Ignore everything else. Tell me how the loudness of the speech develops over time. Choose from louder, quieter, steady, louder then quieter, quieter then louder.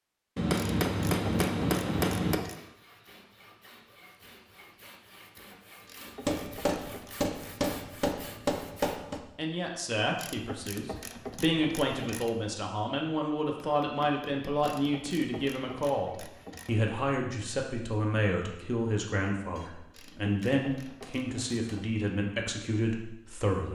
steady.